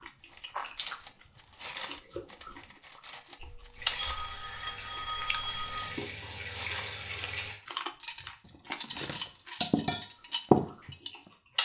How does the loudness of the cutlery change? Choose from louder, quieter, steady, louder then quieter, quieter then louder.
quieter then louder.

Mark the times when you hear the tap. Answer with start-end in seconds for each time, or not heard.
3.8-7.6.